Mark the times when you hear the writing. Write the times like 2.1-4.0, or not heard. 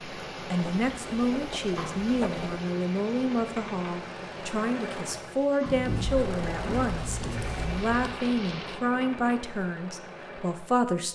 0.6-2.6, 5.7-8.2.